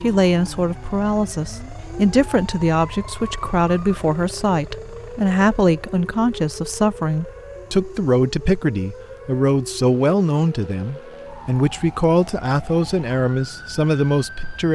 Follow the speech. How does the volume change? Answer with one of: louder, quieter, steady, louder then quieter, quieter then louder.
steady.